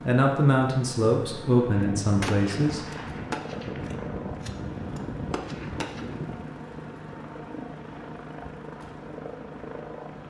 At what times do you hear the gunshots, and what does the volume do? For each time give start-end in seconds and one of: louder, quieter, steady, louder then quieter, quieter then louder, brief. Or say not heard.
1.8-6.5 steady.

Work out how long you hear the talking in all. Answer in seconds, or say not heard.
3 s.